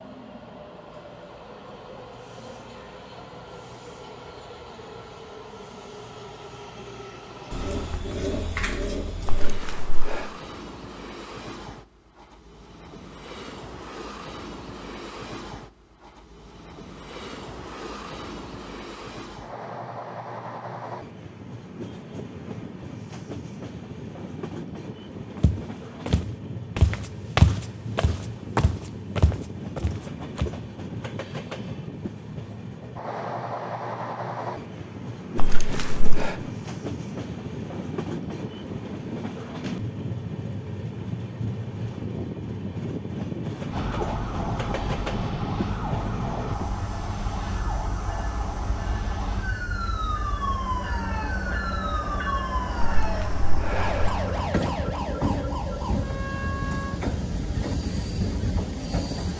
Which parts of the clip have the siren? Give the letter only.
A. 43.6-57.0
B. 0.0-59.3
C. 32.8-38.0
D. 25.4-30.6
A.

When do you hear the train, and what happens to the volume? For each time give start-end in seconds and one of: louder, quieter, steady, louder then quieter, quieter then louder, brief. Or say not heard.
0.0-59.3 louder.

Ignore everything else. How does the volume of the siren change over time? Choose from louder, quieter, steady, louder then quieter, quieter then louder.
steady.